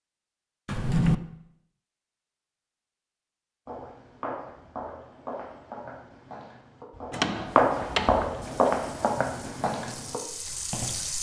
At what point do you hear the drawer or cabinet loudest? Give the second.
1 s.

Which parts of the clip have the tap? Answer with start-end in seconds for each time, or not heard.
8.4-11.1.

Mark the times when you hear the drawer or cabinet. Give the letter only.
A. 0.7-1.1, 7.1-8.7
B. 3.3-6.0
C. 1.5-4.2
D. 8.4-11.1
A.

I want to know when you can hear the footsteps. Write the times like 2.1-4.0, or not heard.
3.6-11.1.